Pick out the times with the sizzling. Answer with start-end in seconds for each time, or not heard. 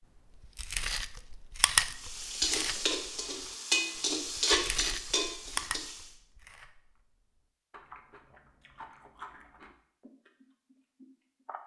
1.9-6.1.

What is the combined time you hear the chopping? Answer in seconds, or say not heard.
not heard.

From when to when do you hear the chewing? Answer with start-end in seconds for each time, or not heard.
0.6-2.9, 4.5-6.9, 7.7-11.6.